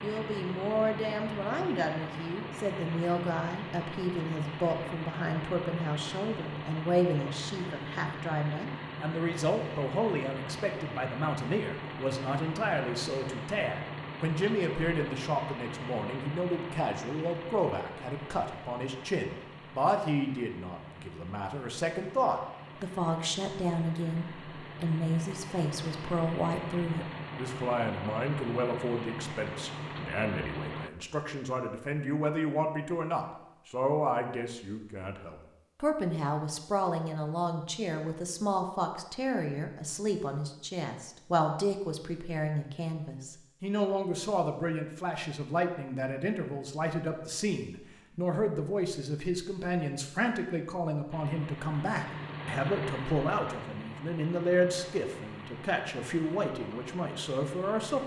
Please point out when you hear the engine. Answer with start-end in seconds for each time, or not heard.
0.0-30.9, 51.1-58.0.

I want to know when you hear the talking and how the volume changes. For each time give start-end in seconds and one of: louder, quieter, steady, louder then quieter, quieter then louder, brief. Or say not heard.
0.0-58.0 steady.